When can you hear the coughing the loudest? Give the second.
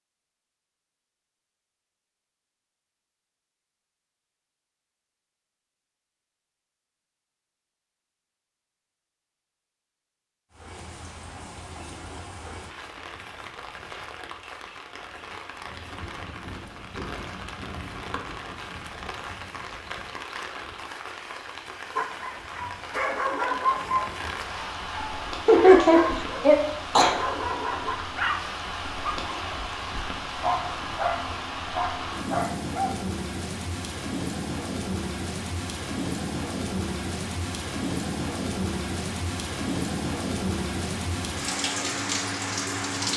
26 s.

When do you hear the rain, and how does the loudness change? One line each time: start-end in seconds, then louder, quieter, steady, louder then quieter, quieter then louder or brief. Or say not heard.
10.5-43.1 louder.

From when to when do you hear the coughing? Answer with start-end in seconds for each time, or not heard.
25.4-27.1.